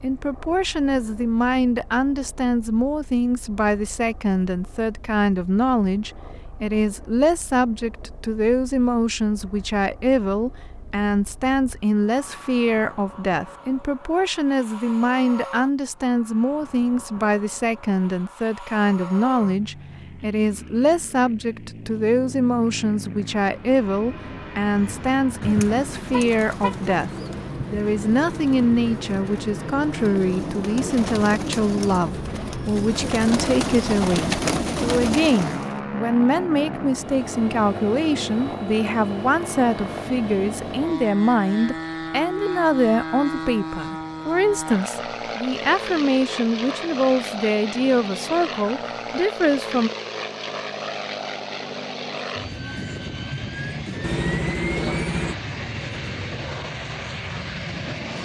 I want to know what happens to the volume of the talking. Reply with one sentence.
The loudness of the talking stays about the same.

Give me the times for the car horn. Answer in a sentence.
The car horn can be heard from 26.1 to 26.9 s and from 54.0 to 55.4 s.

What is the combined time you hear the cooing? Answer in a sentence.
The cooing can be heard for 11 seconds in total.